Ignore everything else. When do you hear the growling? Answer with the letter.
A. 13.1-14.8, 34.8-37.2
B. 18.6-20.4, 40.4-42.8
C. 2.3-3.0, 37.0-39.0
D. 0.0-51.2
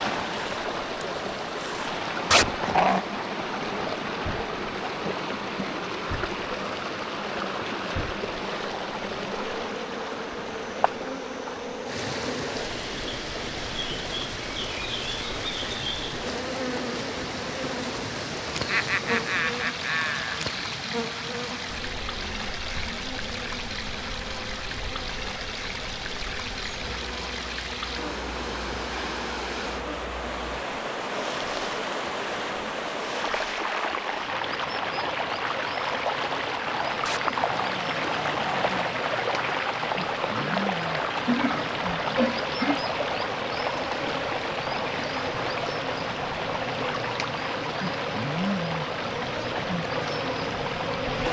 C.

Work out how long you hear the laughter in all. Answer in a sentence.
You can hear the laughter for 4 seconds altogether.